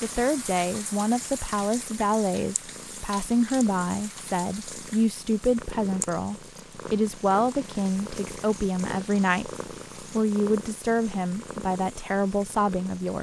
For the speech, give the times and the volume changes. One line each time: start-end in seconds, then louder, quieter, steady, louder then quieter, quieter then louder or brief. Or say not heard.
0.0-13.1 steady.